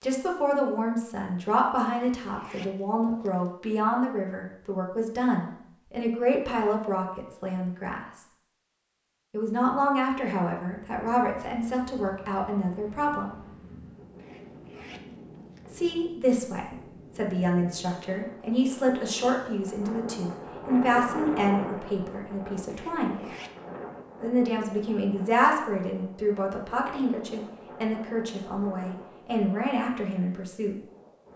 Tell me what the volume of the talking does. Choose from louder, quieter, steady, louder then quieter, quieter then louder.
steady.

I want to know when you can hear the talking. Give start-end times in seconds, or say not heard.
0.0-8.2, 9.3-13.3, 15.7-23.2, 24.2-30.8.